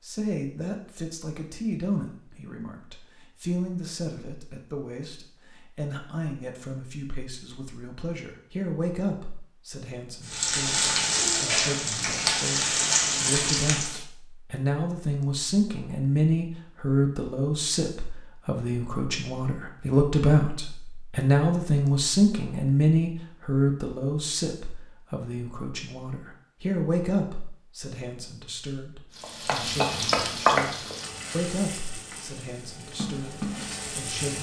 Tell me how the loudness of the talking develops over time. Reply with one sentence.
The volume of the talking goes up, then down.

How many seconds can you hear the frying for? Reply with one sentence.
You can hear the frying for 9 seconds altogether.